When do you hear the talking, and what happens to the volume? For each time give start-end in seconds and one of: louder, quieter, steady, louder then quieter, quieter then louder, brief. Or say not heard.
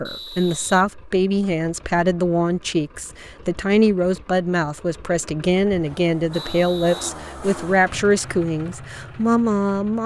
0.0-10.0 steady.